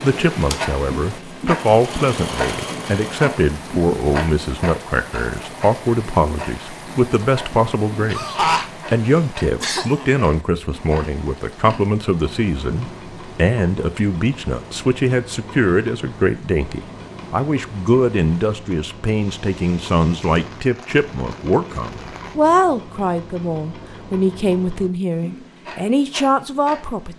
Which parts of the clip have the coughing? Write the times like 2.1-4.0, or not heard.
8.1-10.1.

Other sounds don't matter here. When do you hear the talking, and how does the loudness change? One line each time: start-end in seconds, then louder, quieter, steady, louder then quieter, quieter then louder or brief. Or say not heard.
0.0-27.1 steady.